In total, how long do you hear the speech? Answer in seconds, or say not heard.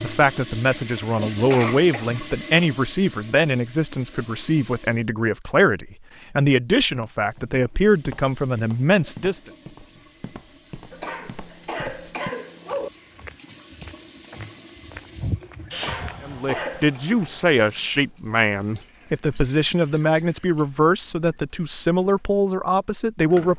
17 s.